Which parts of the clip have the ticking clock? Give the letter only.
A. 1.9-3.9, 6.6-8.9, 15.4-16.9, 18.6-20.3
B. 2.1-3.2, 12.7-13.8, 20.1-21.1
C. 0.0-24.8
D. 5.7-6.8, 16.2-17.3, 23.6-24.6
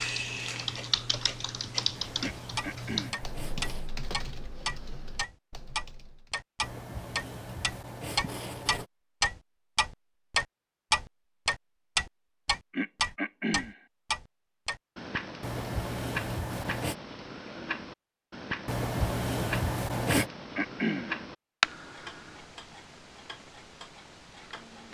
C.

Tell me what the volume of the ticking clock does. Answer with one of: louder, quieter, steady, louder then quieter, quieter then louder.
louder then quieter.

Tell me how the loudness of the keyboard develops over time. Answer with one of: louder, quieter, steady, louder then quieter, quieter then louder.
quieter.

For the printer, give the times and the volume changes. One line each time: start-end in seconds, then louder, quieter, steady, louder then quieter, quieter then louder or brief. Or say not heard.
not heard.